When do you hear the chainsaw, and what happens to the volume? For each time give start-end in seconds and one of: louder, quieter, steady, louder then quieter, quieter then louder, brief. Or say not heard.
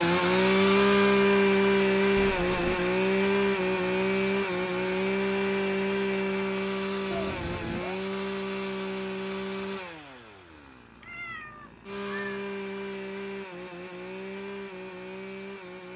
0.0-15.9 quieter.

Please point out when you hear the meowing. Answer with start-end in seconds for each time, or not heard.
2.1-2.9, 7.1-8.0, 11.0-12.4.